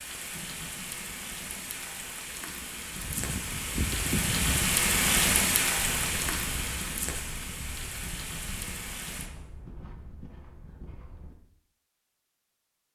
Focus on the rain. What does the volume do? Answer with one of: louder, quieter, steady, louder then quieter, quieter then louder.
louder then quieter.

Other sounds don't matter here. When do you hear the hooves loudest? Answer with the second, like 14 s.
4 s.